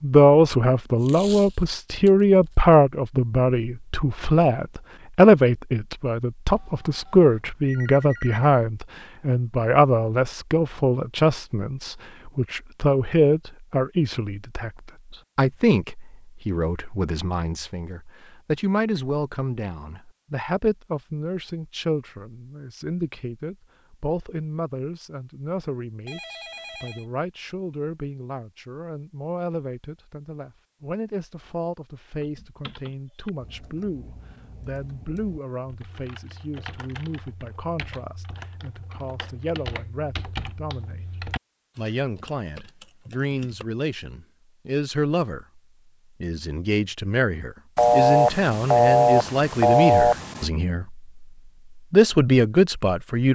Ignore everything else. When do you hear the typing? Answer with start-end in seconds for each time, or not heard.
32.1-43.6.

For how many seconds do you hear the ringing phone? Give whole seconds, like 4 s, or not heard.
6 s.